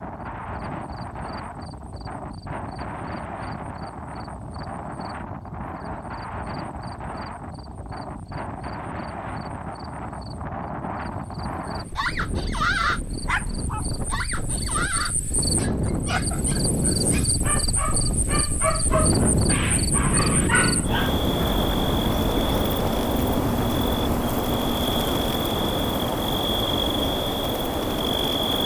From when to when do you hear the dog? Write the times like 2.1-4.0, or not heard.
11.9-21.1.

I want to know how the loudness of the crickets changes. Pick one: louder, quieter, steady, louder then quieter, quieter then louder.
louder.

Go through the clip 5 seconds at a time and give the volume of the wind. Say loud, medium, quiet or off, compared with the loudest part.
medium, medium, medium, loud, loud, medium.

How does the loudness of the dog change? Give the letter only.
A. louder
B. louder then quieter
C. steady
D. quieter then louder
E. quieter
D.